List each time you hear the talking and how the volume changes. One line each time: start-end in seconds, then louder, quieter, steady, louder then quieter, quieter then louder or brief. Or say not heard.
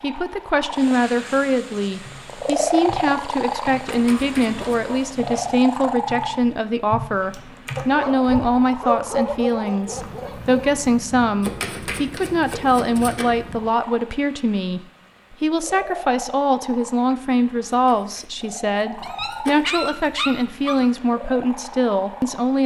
0.0-22.6 steady.